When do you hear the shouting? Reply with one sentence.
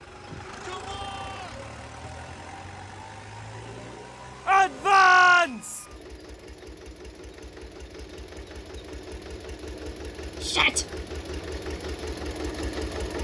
You can hear the shouting from 0.2 to 1.6 s, from 4.5 to 5.8 s and from 10.4 to 10.8 s.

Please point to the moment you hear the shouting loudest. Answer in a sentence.
The loudest moment of the shouting is at 5 seconds.